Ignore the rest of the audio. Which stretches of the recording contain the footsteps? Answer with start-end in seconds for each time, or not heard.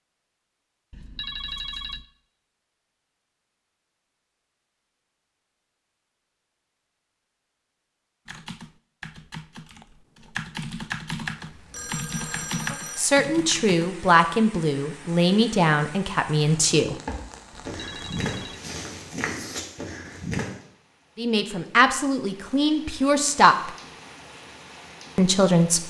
17.1-20.6.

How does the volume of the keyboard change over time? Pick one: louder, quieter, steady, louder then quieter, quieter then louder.
louder.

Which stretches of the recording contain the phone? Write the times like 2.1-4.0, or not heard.
0.9-2.0, 11.7-13.1, 17.5-18.6.